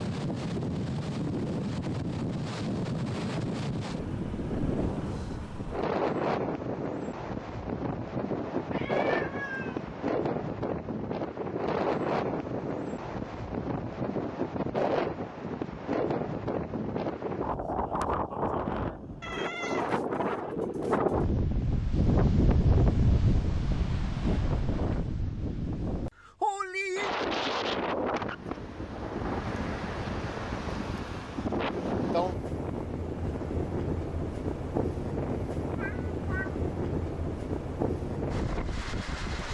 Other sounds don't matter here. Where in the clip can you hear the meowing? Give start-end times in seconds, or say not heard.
8.4-9.9, 19.2-19.9, 35.8-36.5.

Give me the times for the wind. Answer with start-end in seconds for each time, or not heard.
0.0-39.5.